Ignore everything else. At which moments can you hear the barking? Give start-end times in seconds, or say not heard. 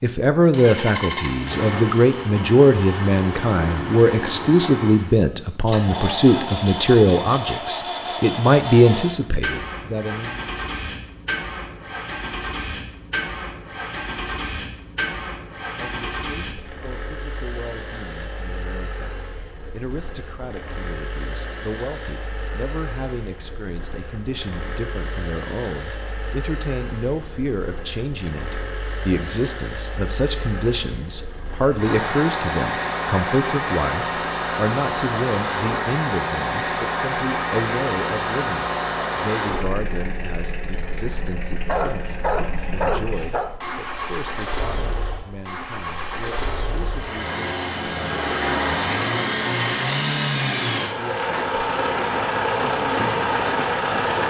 41.6-43.5.